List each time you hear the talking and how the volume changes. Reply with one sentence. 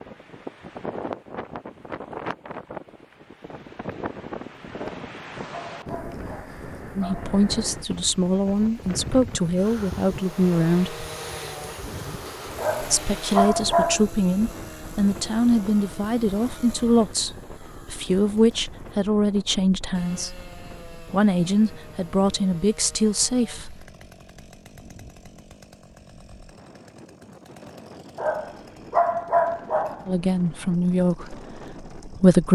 You can hear the talking from 7.0 to 11.1 s, at a steady volume; from 12.8 to 23.8 s, at a steady volume; and briefly from 30.1 to 32.4 s.